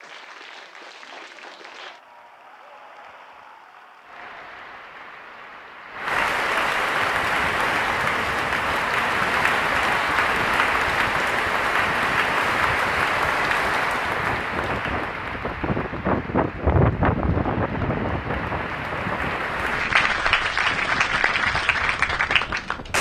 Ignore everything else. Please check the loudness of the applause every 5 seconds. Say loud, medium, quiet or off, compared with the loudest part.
quiet, loud, loud, medium, loud.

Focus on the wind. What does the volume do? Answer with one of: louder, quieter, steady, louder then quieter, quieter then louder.
louder then quieter.